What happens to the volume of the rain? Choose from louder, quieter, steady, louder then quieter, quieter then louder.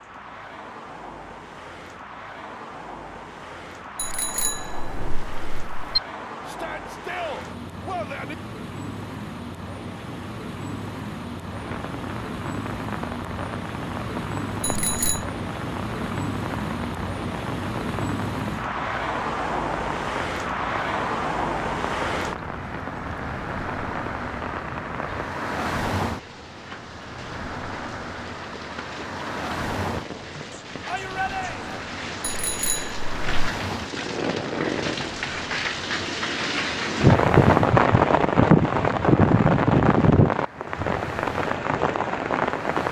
louder.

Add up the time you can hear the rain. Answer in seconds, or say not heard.
31 s.